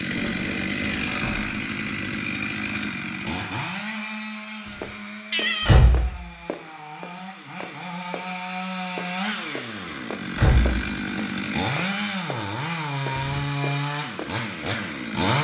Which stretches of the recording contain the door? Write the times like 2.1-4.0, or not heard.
0.1-1.7, 5.7-6.2, 10.3-10.8.